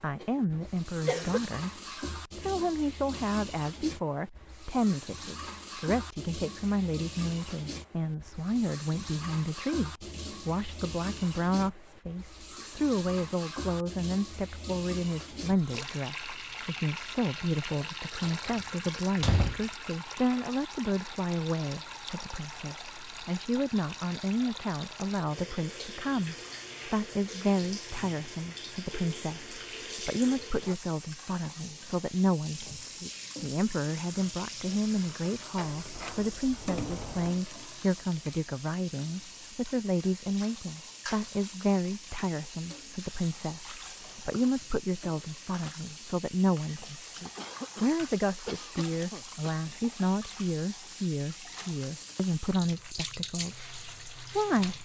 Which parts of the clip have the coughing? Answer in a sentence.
You can hear the coughing from 0.2 to 1.4 s and from 47.4 to 49.7 s.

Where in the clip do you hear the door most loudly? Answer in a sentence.
The volume of the door peaks at 19 seconds.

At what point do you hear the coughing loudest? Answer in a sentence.
The volume of the coughing peaks at 1 second.